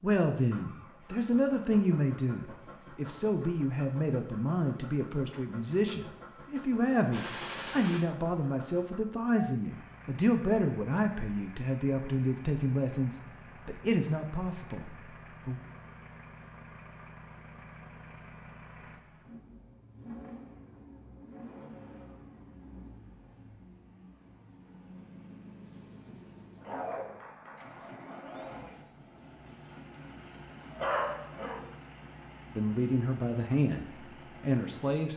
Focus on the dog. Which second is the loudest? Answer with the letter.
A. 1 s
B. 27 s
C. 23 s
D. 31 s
D.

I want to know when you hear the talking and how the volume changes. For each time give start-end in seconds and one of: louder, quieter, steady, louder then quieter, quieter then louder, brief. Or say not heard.
0.0-15.6 steady
32.5-35.1 brief.